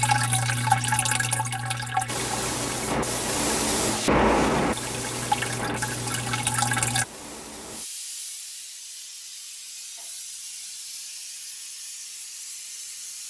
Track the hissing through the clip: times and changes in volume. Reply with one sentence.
The hissing can be heard from 2.0 to 13.2 s, getting quieter.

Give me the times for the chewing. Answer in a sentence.
The chewing can't be heard in this clip.